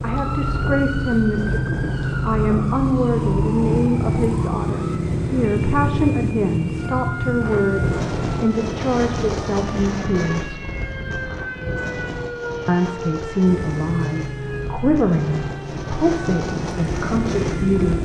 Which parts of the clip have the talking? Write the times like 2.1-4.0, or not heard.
0.0-10.6, 12.7-17.9.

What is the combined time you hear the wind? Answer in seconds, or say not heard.
18 s.